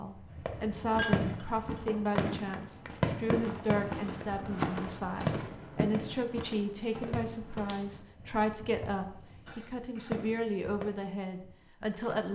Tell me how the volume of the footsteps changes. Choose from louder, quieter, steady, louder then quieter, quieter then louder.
louder then quieter.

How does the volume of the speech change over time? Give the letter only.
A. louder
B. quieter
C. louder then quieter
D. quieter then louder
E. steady
E.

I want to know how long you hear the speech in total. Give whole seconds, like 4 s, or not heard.
12 s.